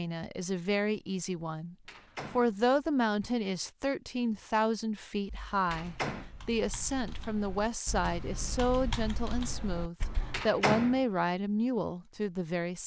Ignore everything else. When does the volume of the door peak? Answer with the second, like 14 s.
11 s.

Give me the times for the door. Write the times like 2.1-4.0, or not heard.
1.9-2.5, 5.7-6.3, 10.3-11.0.